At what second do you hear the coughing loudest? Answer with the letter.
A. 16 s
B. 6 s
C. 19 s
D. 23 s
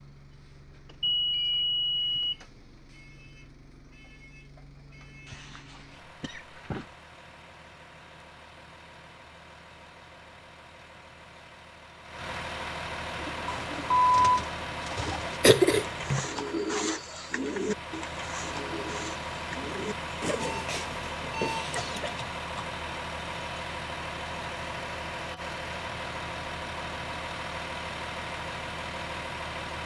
A.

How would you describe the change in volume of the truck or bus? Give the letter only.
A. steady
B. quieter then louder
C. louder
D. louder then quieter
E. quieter
C.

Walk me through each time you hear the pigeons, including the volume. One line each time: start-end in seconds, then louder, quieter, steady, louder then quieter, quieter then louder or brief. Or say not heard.
13.2-20.6 louder then quieter.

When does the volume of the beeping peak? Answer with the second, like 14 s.
14 s.